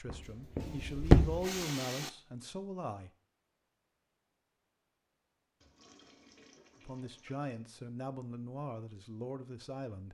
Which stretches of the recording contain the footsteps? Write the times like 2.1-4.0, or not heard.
0.0-1.5.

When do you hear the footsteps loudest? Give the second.
1 s.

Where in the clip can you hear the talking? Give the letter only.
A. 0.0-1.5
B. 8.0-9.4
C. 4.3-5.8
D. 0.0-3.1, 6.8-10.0
D.